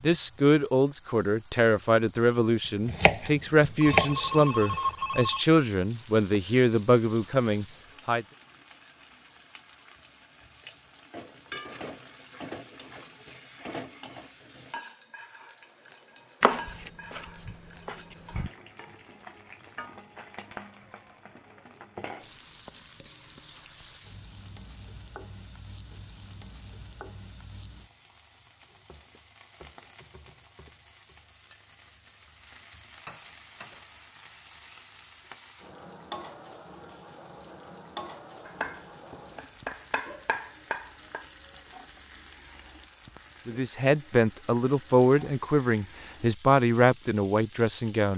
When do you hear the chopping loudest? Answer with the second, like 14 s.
4 s.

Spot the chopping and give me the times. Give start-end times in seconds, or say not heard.
2.9-4.8, 16.4-18.5, 38.5-41.2.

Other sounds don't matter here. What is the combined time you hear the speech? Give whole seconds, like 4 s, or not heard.
13 s.